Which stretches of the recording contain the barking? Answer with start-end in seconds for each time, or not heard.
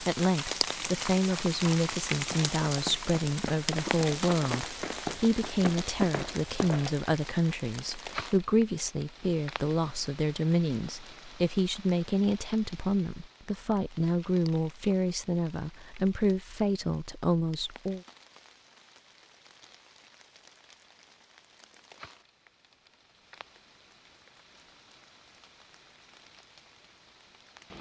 not heard.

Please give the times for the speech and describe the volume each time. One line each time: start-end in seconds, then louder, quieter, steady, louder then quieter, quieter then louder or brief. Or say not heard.
0.0-18.0 steady.